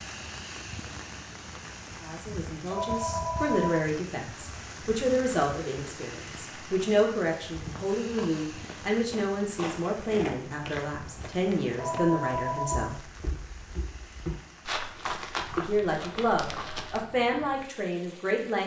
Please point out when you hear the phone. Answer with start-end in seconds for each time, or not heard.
2.7-3.9, 11.8-12.9.